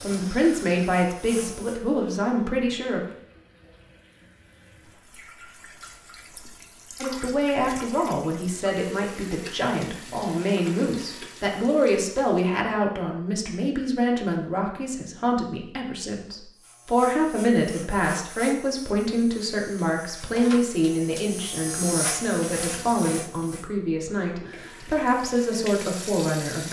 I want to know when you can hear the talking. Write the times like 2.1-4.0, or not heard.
0.0-3.0, 7.0-26.6.